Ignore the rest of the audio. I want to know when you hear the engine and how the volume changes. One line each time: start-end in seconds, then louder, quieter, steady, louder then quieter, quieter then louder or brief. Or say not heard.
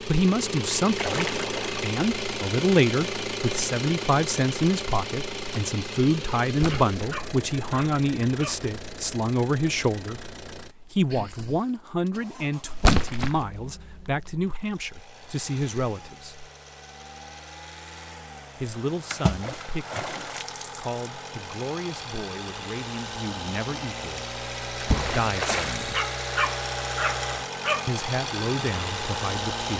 0.0-29.7 quieter then louder.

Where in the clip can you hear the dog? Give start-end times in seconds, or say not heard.
6.7-8.7, 25.9-27.9.